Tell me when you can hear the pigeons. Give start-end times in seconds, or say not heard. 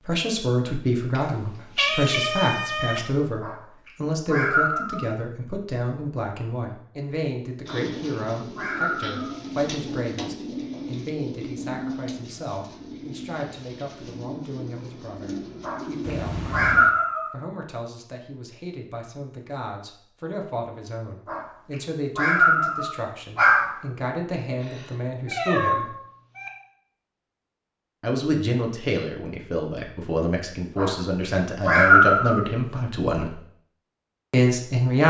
7.7-16.2.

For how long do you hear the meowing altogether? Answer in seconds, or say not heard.
5 s.